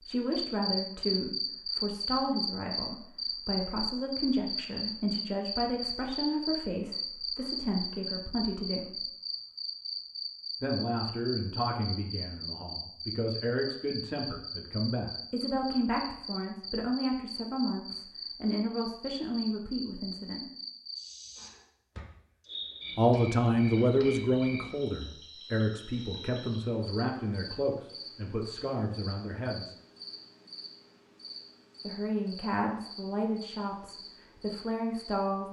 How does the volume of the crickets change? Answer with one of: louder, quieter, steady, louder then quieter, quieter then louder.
quieter.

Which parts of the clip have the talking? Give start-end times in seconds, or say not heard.
0.0-9.1, 10.6-20.4, 22.9-29.8, 31.8-35.4.